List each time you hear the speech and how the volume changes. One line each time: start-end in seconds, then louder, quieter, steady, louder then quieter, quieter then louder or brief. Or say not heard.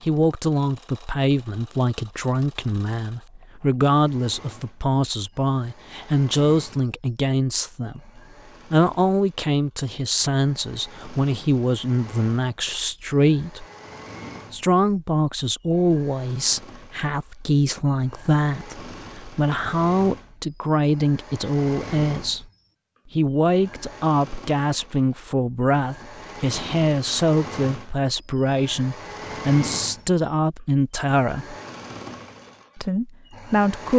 0.0-13.7 steady
14.5-22.4 steady
23.1-31.6 steady
32.8-33.9 brief.